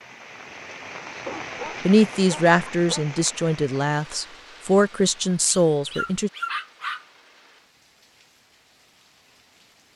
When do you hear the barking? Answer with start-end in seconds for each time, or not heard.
1.1-3.0, 5.5-7.0.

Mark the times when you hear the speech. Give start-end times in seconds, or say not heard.
1.9-6.3.